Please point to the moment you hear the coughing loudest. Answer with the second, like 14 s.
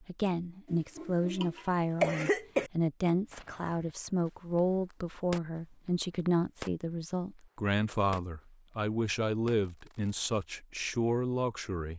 2 s.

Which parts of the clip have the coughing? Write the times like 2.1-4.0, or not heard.
0.7-2.7.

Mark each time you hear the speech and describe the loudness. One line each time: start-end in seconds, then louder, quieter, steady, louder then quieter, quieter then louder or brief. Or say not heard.
0.1-11.9 steady.